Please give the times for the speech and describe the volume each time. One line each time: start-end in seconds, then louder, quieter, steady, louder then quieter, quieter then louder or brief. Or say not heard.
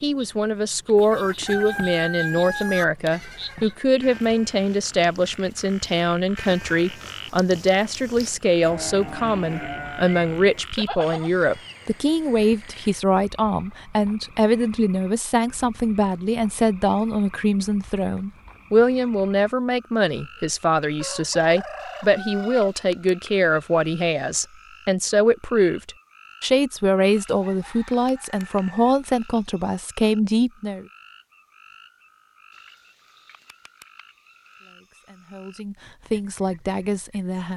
0.0-30.9 steady
34.6-37.5 brief.